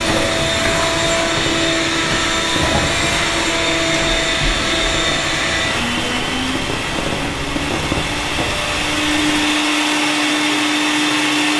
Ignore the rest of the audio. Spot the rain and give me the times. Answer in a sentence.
The rain can be heard from 0.0 to 9.6 s.